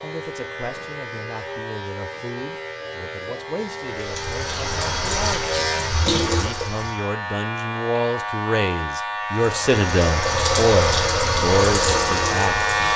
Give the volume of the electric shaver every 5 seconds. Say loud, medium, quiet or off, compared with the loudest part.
medium, loud, loud.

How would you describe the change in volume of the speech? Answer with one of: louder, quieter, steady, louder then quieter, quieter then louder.
louder.